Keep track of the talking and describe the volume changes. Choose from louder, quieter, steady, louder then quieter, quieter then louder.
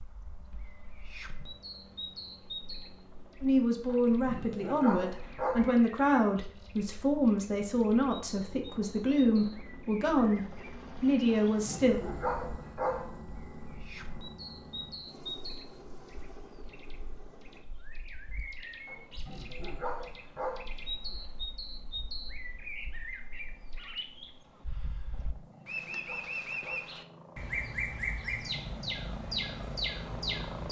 steady.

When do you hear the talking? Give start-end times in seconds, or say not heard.
3.4-12.0.